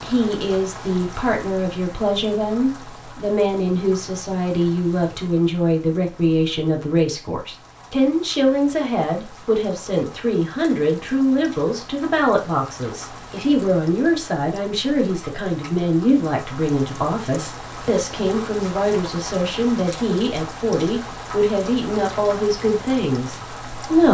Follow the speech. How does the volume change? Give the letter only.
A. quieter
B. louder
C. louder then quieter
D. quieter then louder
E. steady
E.